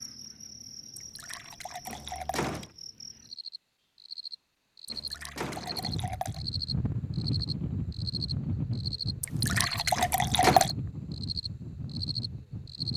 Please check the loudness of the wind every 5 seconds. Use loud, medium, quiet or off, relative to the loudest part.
off, loud, loud.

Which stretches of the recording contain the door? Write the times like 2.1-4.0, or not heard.
1.9-2.7, 4.9-6.0, 9.9-10.7.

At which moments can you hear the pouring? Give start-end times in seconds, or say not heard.
0.9-2.6, 4.8-6.4, 9.2-10.7.